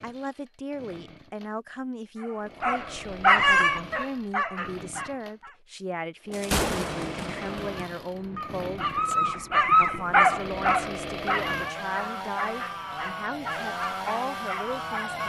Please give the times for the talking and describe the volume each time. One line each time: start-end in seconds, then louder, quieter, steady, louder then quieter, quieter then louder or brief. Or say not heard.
0.0-15.2 steady.